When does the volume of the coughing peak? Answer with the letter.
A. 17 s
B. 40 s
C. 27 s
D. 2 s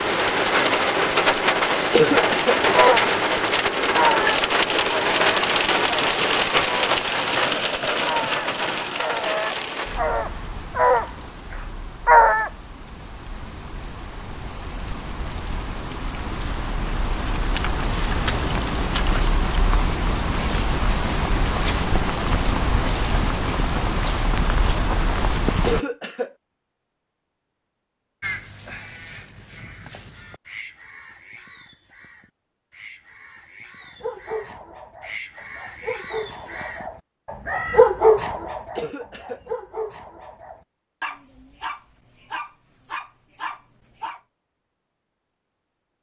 D.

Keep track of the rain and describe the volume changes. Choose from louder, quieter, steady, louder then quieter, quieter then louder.
quieter then louder.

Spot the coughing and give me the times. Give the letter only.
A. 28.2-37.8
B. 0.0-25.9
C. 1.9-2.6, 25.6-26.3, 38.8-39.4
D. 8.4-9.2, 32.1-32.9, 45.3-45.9
C.